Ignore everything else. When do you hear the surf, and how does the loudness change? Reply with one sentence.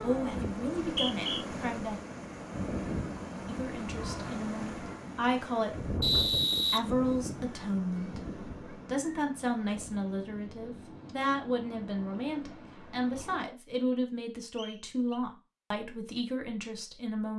The surf can be heard from 0.0 to 13.4 s, getting quieter.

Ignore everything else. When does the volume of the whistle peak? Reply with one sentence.
The volume of the whistle peaks at 6 seconds.